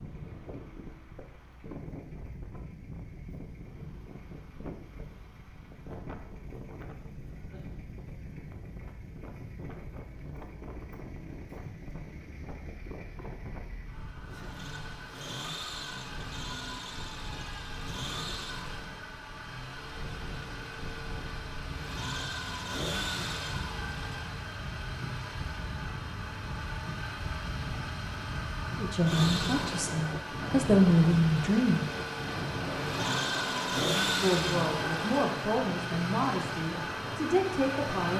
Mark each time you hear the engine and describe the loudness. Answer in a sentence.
The engine can be heard from 0.0 to 38.1 s, getting louder.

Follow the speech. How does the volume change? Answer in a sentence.
The volume of the speech goes up, then down.